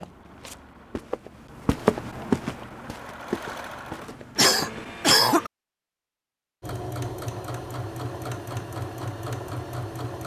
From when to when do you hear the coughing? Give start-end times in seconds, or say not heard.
4.3-5.5.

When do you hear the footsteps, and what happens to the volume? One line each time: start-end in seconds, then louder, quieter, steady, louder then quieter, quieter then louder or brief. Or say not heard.
0.0-4.9 louder then quieter.